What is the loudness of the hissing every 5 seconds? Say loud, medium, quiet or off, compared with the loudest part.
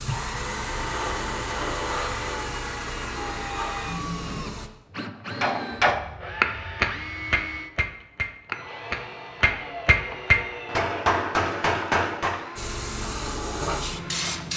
loud, off, loud.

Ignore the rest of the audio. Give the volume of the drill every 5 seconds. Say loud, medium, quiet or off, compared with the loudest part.
loud, loud, medium.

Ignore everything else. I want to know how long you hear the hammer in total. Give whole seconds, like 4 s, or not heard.
7 s.